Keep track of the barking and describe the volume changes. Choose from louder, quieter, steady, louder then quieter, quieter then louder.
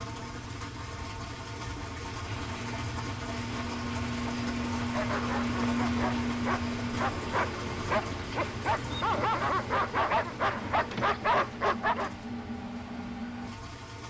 louder.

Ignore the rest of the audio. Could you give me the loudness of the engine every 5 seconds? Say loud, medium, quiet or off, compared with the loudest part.
loud, loud, medium.